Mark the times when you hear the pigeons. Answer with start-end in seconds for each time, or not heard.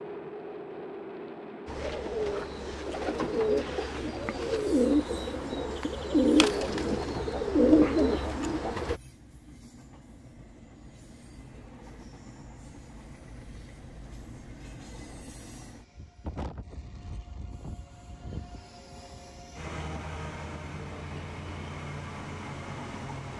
1.6-9.0.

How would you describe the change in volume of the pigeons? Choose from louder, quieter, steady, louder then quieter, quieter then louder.
louder.